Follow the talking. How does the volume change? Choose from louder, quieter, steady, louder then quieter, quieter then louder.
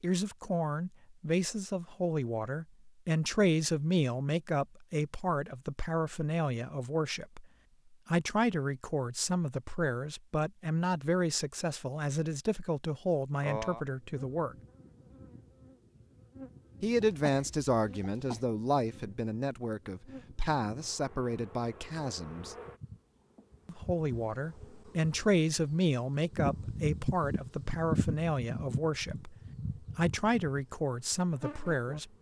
steady.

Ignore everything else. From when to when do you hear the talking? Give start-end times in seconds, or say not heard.
0.0-7.5, 8.1-14.6, 16.8-22.6, 23.6-32.1.